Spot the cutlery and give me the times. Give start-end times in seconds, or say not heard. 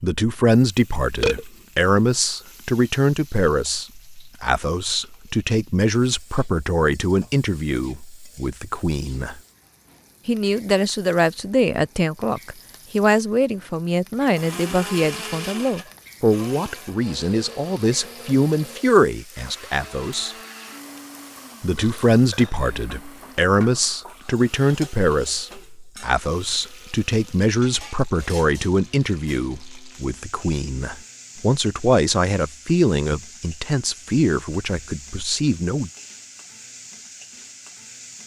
not heard.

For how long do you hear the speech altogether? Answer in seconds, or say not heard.
34 s.